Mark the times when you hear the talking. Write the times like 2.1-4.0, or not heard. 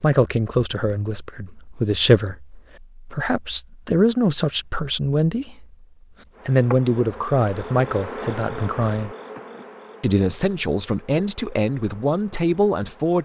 0.0-5.7, 6.5-9.1, 10.0-13.1.